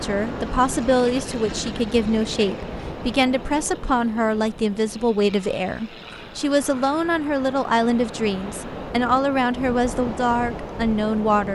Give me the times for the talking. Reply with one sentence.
The talking can be heard from 0.0 to 11.4 s.